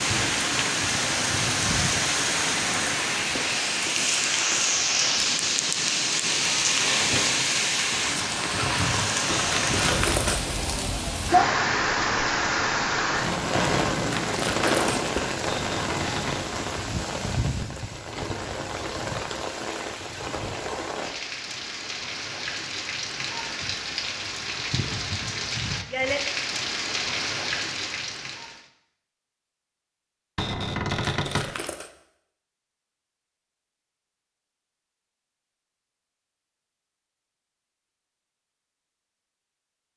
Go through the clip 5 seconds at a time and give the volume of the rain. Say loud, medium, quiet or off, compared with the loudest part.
loud, loud, loud, medium, medium, medium, off, off.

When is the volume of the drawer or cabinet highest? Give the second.
31 s.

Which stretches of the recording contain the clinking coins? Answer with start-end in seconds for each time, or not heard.
9.5-10.4, 14.1-15.3, 31.1-31.9.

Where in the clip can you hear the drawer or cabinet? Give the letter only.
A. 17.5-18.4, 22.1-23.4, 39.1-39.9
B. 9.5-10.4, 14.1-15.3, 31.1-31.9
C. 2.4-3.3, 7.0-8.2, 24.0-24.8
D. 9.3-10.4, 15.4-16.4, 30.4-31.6
D.